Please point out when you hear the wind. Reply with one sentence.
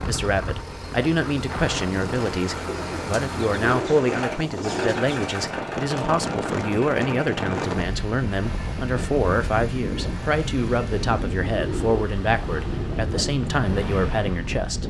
The wind can be heard from 0.0 to 14.8 s.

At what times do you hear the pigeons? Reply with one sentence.
The pigeons can be heard from 2.6 to 5.5 s and from 11.5 to 13.3 s.